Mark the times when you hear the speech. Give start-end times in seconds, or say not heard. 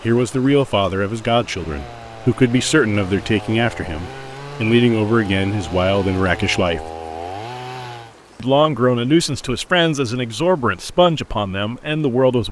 0.0-6.8, 8.4-12.4.